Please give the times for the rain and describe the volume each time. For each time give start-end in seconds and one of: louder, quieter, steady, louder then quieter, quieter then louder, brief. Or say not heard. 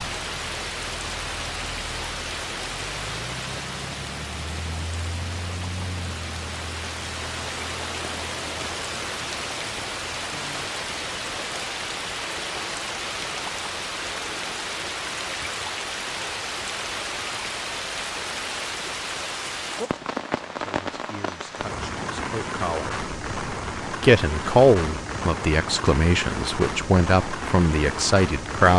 0.0-28.7 steady.